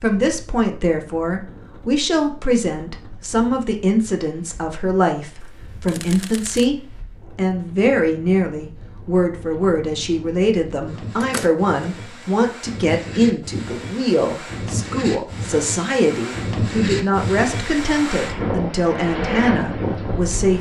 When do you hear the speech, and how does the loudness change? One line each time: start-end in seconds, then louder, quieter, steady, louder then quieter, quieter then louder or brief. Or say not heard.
0.0-20.5 steady.